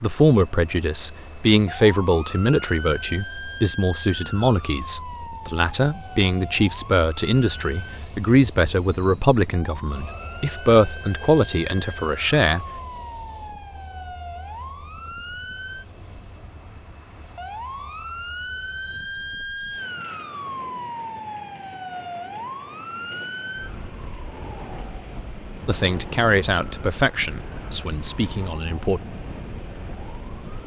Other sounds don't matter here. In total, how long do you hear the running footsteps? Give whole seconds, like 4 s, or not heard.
not heard.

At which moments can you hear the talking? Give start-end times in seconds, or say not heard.
0.0-12.7, 25.6-29.0.